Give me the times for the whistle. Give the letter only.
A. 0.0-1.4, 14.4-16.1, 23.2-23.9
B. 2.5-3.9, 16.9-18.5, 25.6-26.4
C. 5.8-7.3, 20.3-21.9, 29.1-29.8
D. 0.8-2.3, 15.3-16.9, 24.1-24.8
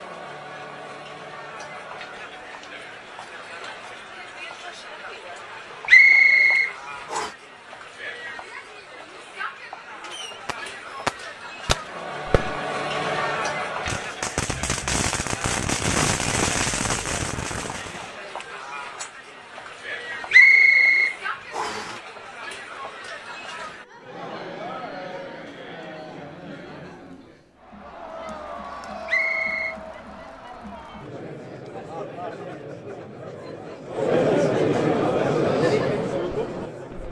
C.